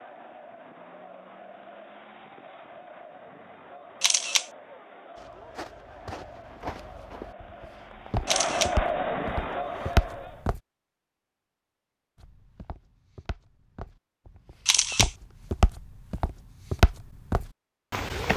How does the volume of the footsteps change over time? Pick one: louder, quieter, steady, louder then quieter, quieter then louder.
louder.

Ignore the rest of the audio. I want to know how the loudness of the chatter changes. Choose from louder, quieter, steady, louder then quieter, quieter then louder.
louder.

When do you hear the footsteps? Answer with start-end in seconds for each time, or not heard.
5.2-10.6, 12.2-18.3.